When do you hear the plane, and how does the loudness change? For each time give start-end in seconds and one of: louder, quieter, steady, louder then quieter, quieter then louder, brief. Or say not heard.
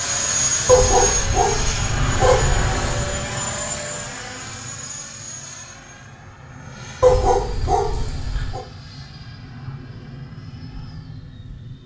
0.0-11.8 quieter.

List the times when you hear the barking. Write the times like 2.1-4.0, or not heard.
0.7-3.0, 7.0-8.6.